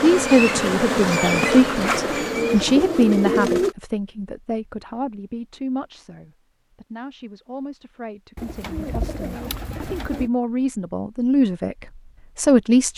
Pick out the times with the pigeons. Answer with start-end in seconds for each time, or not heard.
1.2-3.8, 8.3-10.3.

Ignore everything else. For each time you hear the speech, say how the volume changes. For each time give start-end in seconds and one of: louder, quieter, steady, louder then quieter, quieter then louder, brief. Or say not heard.
0.0-12.9 quieter then louder.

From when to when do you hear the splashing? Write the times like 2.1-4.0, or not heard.
not heard.